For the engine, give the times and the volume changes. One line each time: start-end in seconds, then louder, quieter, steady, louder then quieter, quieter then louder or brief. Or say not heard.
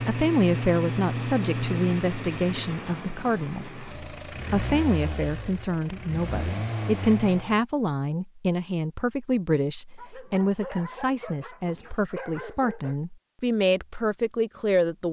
0.0-7.6 quieter then louder.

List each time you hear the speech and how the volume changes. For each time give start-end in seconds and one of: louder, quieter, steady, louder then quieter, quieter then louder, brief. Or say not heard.
0.0-15.0 steady.